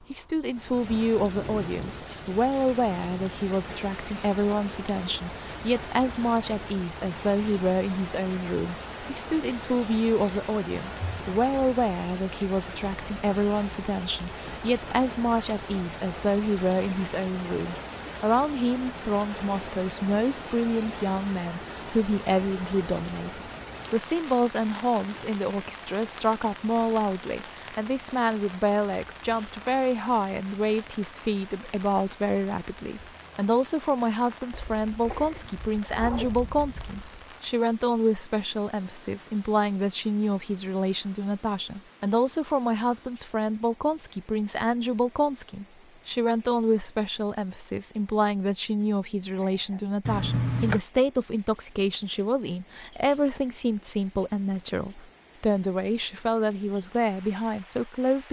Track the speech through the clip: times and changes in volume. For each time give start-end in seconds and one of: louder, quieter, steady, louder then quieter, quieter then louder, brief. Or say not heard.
0.1-58.2 steady.